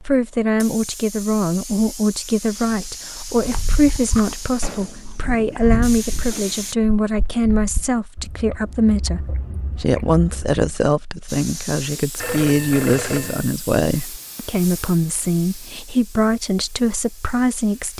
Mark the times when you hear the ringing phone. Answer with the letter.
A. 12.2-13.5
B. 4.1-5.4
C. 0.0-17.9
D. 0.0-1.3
A.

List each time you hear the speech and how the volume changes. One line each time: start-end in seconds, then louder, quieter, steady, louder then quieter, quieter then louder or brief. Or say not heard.
0.0-17.9 steady.